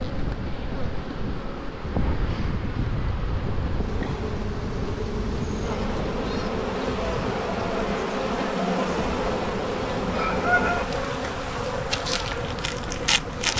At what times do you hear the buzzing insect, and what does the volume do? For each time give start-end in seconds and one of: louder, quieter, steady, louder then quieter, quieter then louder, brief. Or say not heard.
0.0-13.5 louder.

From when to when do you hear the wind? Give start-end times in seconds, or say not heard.
0.0-13.5.